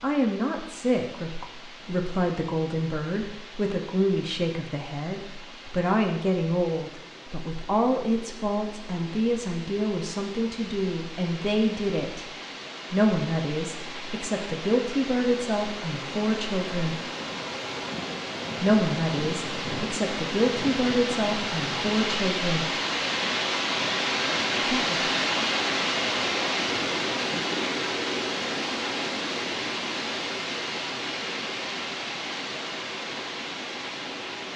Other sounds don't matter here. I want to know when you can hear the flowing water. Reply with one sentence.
You can hear the flowing water from 0.0 to 34.5 s.